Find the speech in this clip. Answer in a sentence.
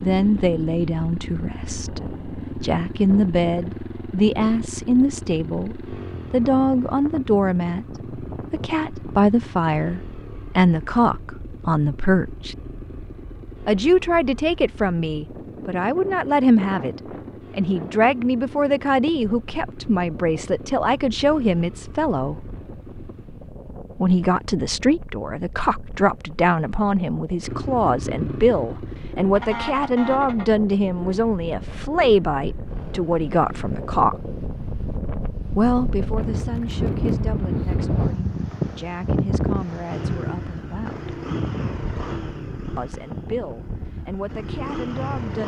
The speech can be heard from 0.0 to 12.6 s, from 13.7 to 22.4 s, from 23.9 to 34.1 s, from 35.5 to 41.1 s and from 42.8 to 45.4 s.